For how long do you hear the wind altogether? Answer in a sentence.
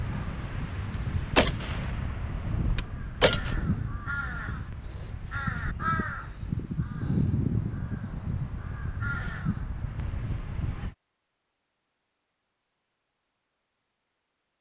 You can hear the wind for 11 seconds altogether.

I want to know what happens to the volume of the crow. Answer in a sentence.
The volume of the crow goes up, then down.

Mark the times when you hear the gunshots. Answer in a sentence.
You can hear the gunshots from 1.4 to 3.5 s.